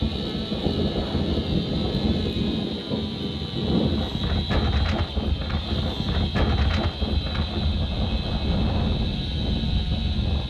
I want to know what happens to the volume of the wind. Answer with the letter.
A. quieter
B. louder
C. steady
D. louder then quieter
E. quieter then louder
C.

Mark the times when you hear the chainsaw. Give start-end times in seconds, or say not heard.
0.0-10.4.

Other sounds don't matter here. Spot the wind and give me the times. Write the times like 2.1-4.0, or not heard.
0.0-10.4.